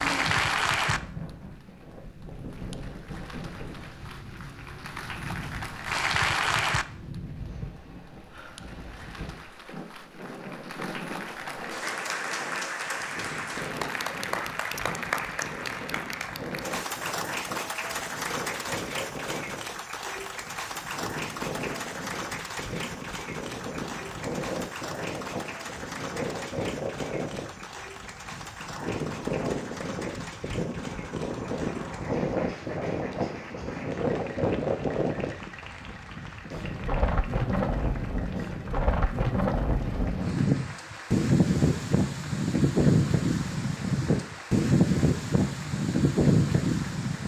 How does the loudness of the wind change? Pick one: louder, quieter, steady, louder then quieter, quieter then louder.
louder.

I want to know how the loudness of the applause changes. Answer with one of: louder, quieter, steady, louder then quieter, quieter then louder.
quieter.